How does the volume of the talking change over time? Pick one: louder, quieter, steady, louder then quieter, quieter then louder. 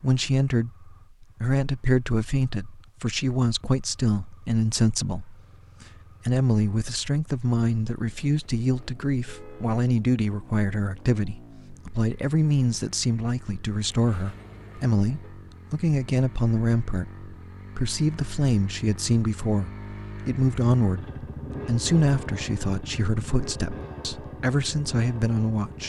steady.